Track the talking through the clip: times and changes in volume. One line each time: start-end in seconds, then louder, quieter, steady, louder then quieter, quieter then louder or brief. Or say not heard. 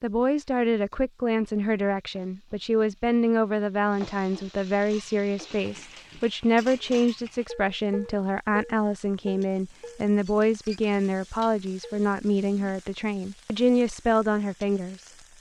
0.0-15.1 steady.